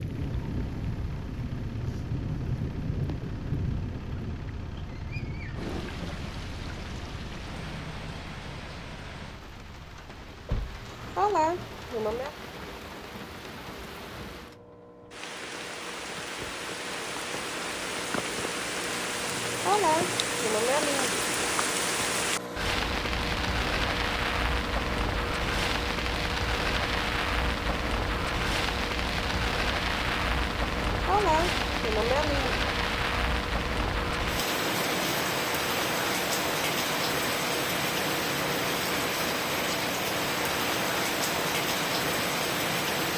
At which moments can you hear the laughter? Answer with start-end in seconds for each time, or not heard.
10.8-12.3, 19.4-21.1, 30.9-32.6.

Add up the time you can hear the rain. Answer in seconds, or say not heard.
43 s.